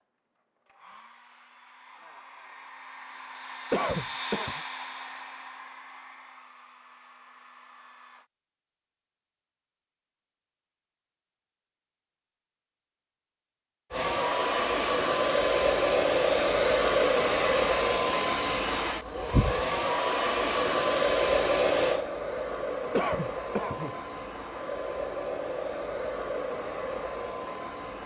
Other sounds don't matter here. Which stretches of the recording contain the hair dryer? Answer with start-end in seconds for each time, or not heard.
0.3-8.3, 13.9-28.0.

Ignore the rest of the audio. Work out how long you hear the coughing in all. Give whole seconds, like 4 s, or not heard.
2 s.